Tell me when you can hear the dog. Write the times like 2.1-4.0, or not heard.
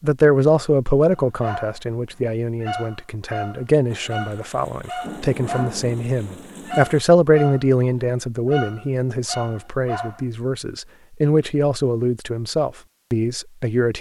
1.1-1.8, 2.6-5.8, 6.7-10.2.